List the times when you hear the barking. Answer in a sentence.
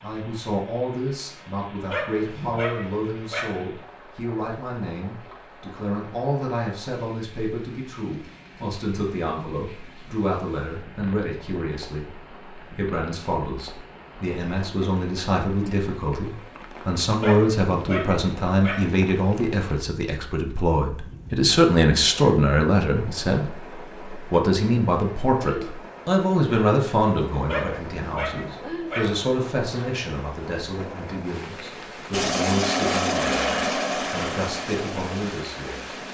You can hear the barking from 1.9 to 3.7 s, from 17.2 to 18.9 s and from 27.4 to 29.2 s.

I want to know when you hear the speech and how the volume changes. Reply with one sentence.
The speech can be heard from 0.0 to 36.0 s, getting louder then quieter.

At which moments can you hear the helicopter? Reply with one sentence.
The helicopter can be heard from 32.1 to 36.0 s.